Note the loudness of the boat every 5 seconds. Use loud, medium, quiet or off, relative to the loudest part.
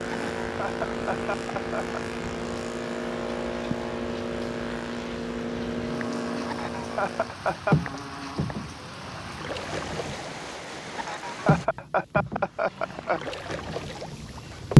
medium, medium, loud.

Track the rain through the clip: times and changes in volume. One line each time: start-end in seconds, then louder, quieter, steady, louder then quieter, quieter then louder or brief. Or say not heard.
0.0-11.7 steady.